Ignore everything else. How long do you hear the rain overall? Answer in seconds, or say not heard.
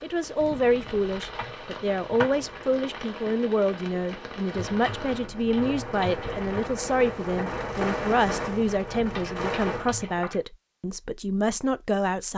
10 s.